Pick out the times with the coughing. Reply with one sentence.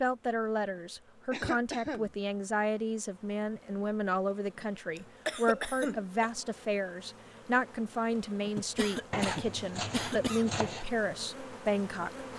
You can hear the coughing from 1.3 to 2.1 s, from 5.0 to 6.3 s and from 8.6 to 10.5 s.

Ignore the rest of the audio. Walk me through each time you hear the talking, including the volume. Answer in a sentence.
You can hear the talking from 0.0 to 12.2 s, at a steady volume.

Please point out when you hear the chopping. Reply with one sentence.
You can hear the chopping from 9.1 to 10.8 s.